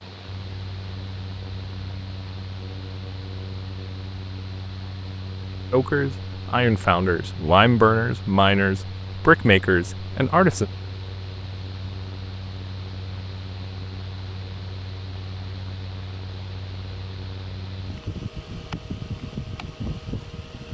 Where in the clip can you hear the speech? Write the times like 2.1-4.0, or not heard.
5.7-10.7.